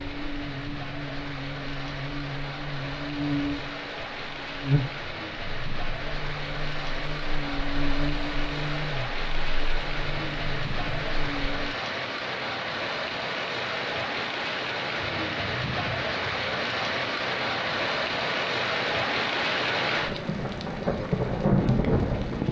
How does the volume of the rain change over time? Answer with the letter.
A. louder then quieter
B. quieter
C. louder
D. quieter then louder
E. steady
C.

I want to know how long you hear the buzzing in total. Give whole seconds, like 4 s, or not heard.
12 s.